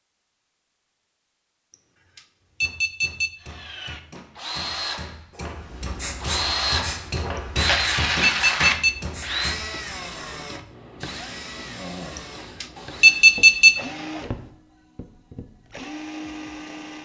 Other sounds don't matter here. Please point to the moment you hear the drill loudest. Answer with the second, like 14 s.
8 s.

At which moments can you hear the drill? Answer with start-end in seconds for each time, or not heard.
3.4-17.0.